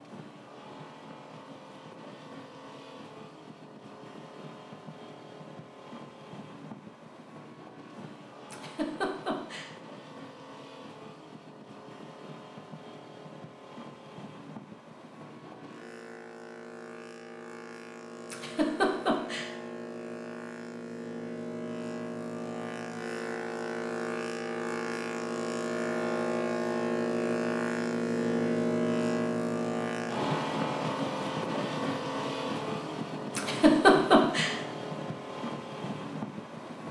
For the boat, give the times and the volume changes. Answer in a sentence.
You can hear the boat from 0.0 to 36.8 s, getting louder.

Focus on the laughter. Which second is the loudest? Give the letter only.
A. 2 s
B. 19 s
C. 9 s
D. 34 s
D.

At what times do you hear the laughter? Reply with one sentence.
You can hear the laughter from 8.5 to 9.7 s, from 18.3 to 19.5 s and from 33.4 to 34.5 s.